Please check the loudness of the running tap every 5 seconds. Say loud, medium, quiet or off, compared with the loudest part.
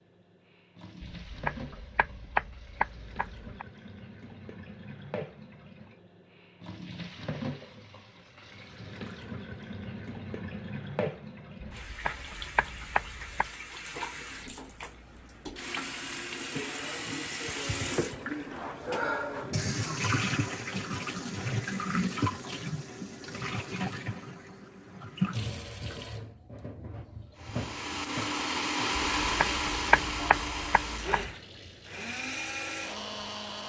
quiet, medium, medium, loud, loud, loud, quiet.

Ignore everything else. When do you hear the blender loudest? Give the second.
29 s.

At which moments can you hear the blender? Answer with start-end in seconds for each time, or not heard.
27.4-33.6.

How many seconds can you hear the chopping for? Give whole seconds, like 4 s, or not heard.
7 s.